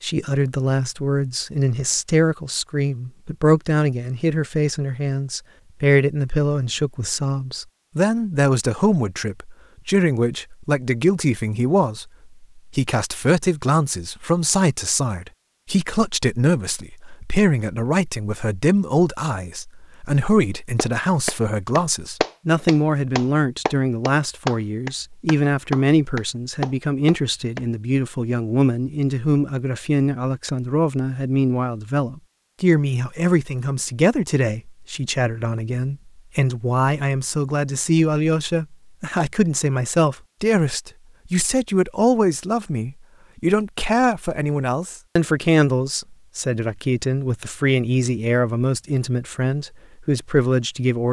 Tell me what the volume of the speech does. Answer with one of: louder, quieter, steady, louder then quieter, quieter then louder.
steady.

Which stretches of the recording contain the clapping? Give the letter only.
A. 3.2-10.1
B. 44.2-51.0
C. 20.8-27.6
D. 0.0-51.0
C.